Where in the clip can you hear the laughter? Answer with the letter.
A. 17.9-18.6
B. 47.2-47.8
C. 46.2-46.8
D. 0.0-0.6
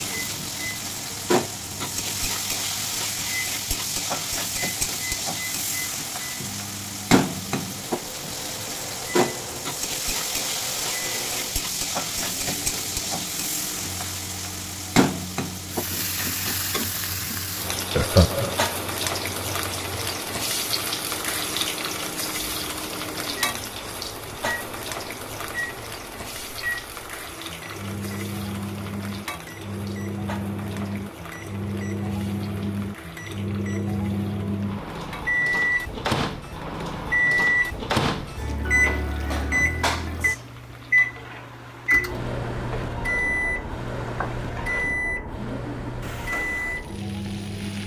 A.